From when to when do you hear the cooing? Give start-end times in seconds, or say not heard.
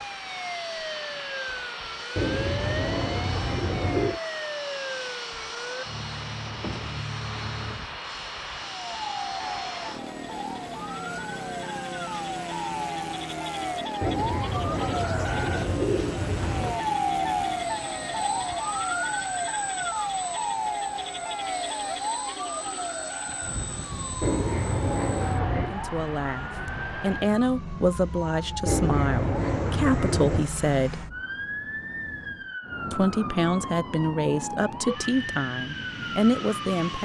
2.1-4.2, 14.0-16.9, 24.2-25.8, 28.6-30.5.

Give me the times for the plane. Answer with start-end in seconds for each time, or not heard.
0.0-37.0.